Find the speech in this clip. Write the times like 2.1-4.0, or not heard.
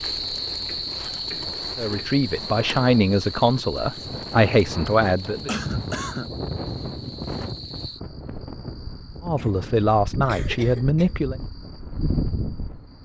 1.8-5.5, 9.2-11.3.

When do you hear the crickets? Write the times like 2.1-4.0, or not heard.
0.0-13.0.